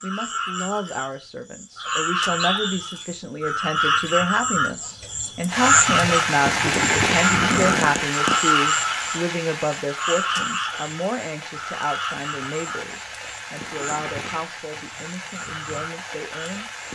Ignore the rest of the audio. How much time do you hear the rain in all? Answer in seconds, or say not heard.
11 s.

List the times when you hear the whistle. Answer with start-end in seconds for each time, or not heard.
1.8-3.0.